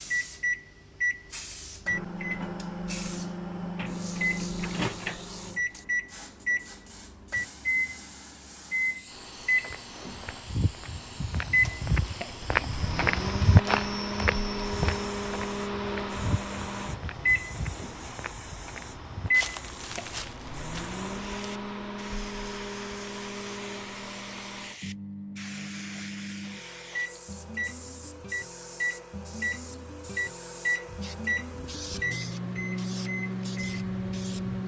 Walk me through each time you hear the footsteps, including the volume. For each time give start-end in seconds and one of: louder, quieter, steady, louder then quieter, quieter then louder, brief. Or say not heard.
9.6-21.0 louder then quieter.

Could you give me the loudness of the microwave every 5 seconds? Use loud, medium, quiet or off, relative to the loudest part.
loud, loud, loud, loud, medium, medium, loud.